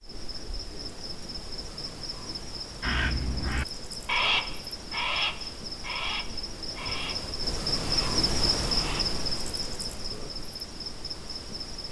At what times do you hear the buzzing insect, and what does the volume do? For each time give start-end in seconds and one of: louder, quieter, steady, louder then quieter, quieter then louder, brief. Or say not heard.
0.0-11.8 louder then quieter.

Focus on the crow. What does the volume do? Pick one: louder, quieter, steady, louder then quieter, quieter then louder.
quieter.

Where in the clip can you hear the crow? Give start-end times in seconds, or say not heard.
2.8-9.2.